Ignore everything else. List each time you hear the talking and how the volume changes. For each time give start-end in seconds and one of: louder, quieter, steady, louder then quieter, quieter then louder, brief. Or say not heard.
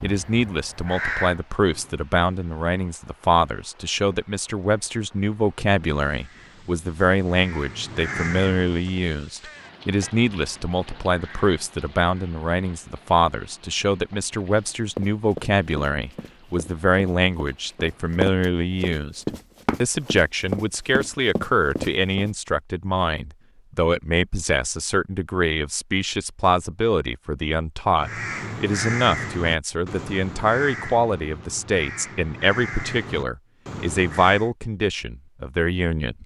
0.0-36.2 steady.